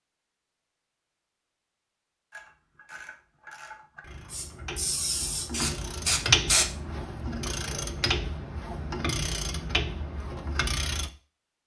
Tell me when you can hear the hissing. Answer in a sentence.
You can hear the hissing from 4.3 to 6.7 s.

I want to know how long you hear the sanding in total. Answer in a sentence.
You can't hear the sanding here.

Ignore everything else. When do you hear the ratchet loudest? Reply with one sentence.
The loudest moment of the ratchet is at 6 seconds.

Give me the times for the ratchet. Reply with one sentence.
You can hear the ratchet from 2.3 to 11.1 s.